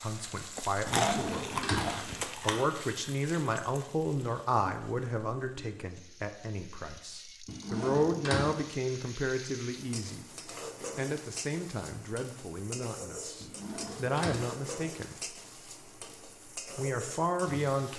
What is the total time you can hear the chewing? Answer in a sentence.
You can hear the chewing for 2 seconds altogether.